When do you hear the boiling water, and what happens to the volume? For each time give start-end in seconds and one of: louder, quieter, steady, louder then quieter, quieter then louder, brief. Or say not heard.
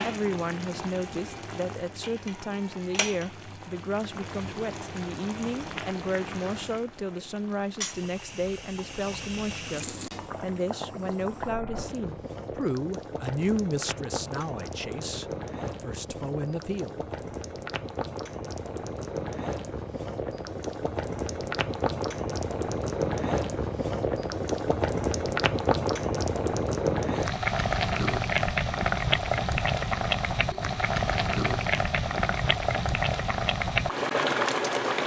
0.0-35.0 louder.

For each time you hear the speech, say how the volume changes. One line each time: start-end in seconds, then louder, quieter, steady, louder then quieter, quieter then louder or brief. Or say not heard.
0.0-17.1 steady.